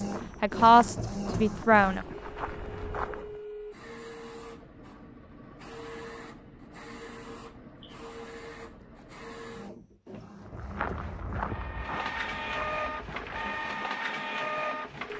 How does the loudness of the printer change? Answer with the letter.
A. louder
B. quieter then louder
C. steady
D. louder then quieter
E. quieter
B.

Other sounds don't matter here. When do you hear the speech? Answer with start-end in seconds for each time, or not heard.
0.4-2.0.